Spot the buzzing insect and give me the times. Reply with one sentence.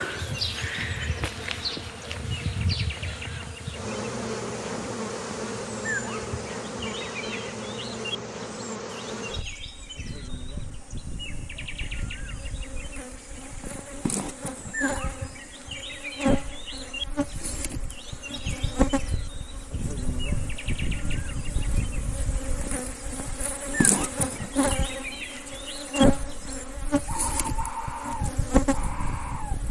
The buzzing insect can be heard from 0.0 to 29.6 s.